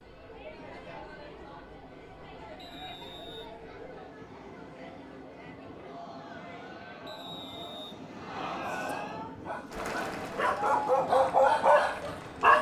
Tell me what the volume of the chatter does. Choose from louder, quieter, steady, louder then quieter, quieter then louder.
louder.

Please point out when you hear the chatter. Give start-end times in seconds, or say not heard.
0.0-12.5.